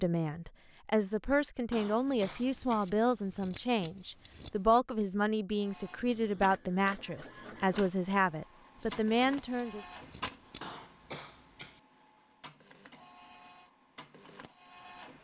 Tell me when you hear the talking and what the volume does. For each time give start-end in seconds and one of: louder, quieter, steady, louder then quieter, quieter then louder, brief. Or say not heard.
0.0-9.8 steady.